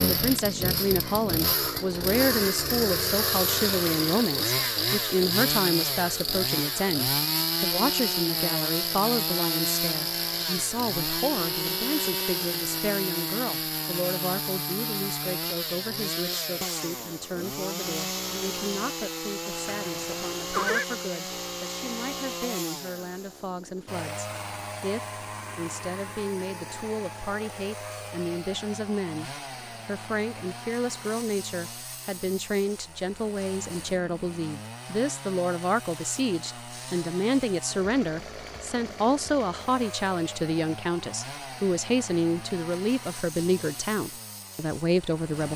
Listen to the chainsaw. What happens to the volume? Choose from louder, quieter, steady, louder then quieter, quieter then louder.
quieter.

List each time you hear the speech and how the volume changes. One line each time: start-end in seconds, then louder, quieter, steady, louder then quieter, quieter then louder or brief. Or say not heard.
0.0-45.5 quieter then louder.